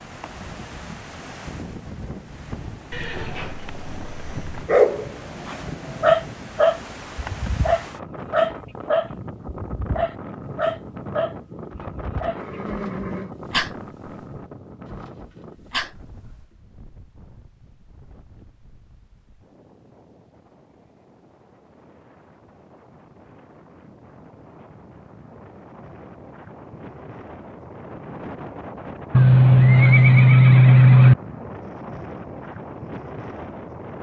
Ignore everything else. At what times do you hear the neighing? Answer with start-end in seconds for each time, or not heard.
2.9-4.5, 12.3-13.3, 29.1-31.1.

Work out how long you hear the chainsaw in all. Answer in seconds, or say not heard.
not heard.